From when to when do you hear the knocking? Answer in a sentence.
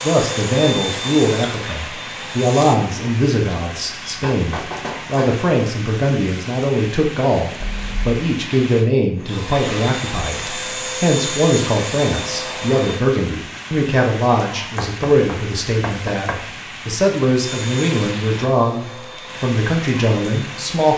The knocking can be heard from 4.0 to 5.4 s, from 7.6 to 8.2 s and from 14.8 to 16.4 s.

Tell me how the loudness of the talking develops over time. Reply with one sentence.
The loudness of the talking stays about the same.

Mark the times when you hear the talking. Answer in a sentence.
You can hear the talking from 0.0 to 20.9 s.